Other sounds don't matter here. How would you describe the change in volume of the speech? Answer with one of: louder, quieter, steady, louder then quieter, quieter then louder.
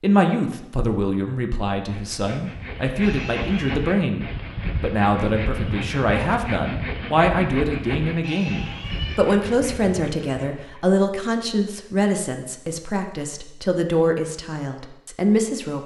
steady.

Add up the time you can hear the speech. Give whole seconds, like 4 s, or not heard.
16 s.